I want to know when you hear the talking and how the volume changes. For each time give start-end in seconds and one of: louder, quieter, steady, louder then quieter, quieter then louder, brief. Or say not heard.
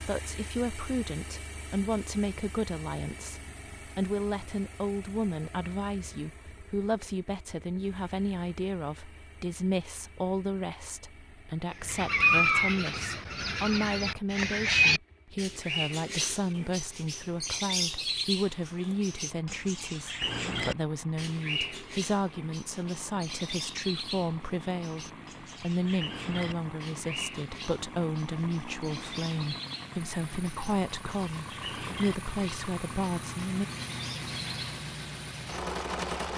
0.0-33.7 steady.